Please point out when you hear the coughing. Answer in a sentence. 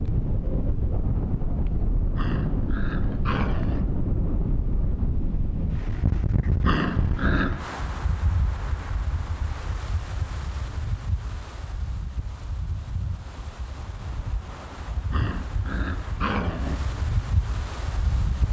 The coughing can't be heard in this clip.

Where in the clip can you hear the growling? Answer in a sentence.
You can hear the growling from 2.1 to 3.9 s, from 6.6 to 7.7 s and from 15.1 to 16.8 s.